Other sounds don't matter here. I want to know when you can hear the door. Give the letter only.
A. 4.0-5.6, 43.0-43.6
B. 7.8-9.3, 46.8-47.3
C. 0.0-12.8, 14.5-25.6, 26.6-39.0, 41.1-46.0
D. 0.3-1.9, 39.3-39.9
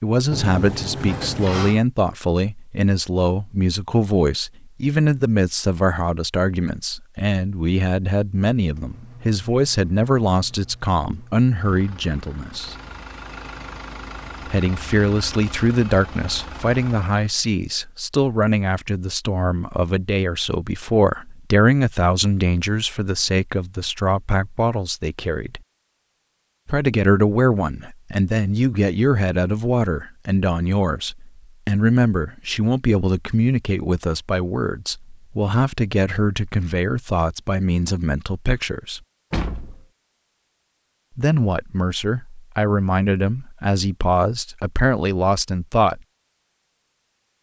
D.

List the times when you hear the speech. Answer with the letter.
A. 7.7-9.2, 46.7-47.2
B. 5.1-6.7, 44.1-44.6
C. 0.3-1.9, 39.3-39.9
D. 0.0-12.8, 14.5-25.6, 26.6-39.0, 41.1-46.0
D.